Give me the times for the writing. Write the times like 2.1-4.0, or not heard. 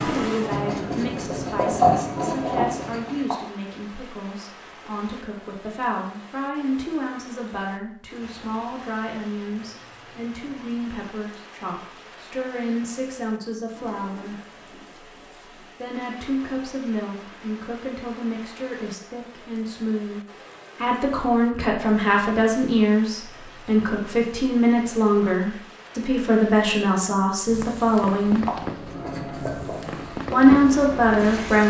0.0-3.4, 28.3-31.6.